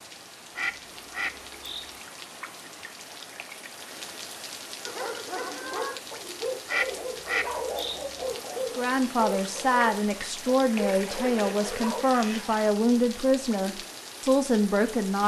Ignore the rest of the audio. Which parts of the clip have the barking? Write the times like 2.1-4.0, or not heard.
4.8-12.1.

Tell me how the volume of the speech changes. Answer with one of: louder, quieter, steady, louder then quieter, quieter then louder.
steady.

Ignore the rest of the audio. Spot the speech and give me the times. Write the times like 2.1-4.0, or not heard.
8.8-15.2.